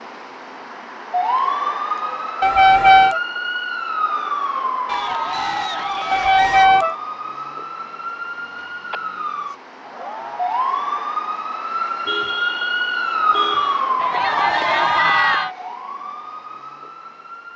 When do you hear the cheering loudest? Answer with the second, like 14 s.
15 s.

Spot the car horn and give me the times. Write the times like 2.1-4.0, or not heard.
2.4-3.2, 6.1-7.0, 12.1-13.8.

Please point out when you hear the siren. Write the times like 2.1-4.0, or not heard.
0.0-17.5.